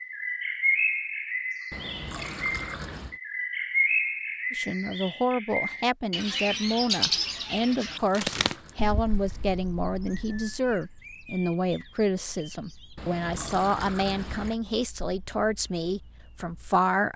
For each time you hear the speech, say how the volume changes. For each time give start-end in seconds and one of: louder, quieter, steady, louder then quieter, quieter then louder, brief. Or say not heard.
4.5-17.1 steady.